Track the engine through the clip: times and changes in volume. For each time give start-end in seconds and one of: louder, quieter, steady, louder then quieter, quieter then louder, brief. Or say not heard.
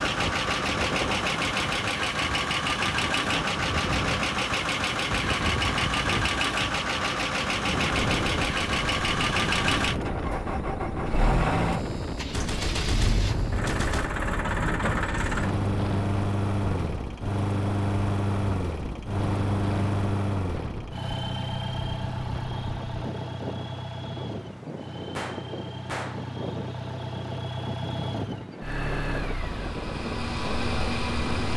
0.0-31.5 quieter.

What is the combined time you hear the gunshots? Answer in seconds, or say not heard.
3 s.